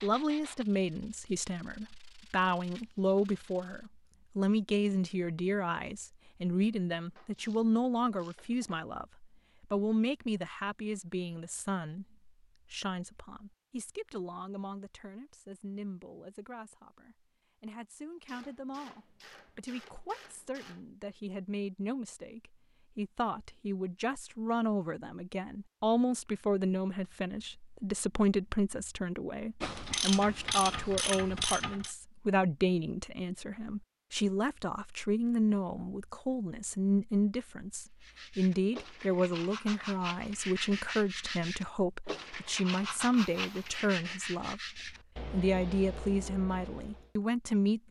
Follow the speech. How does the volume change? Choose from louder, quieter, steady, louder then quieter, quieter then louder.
quieter then louder.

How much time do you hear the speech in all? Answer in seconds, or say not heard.
48 s.